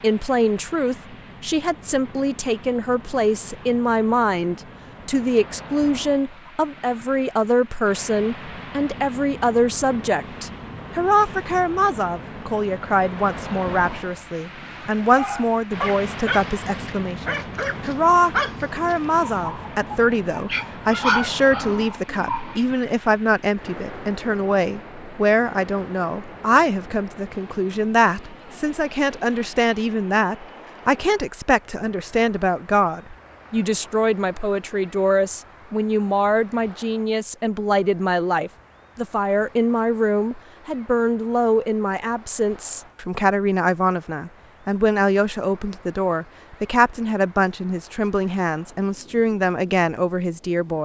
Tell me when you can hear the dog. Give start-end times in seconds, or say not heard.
15.1-22.6.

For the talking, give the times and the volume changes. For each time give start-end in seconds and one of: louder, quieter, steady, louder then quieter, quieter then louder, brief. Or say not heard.
0.0-50.8 steady.